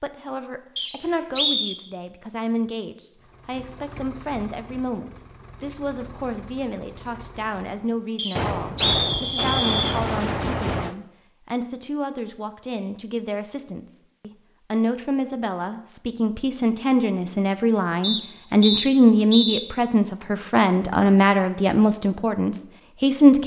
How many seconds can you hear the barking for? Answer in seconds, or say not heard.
not heard.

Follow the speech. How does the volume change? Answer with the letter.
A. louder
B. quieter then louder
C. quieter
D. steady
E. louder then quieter
A.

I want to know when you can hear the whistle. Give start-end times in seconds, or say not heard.
0.8-1.8, 8.2-10.0, 18.0-19.6.